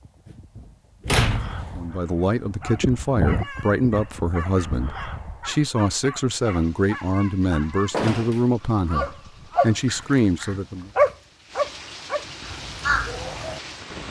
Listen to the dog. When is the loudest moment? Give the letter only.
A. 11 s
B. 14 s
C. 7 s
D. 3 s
A.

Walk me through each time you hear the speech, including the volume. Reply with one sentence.
You can hear the speech from 1.8 to 10.9 s, at a steady volume.